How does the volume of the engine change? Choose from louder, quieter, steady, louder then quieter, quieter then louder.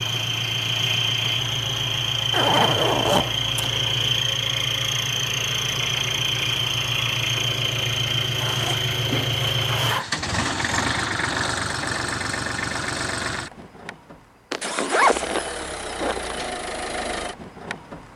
quieter.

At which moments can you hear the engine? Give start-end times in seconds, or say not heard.
0.0-18.1.